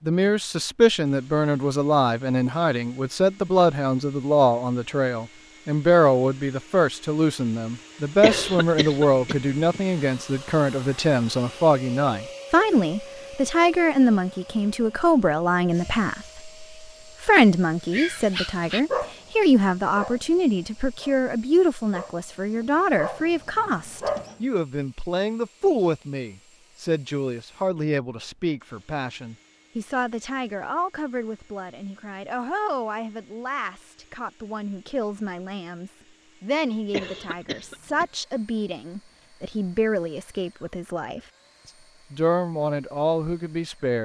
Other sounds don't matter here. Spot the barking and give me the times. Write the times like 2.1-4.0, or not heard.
17.9-24.4.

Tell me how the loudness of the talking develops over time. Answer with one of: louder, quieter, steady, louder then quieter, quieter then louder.
quieter.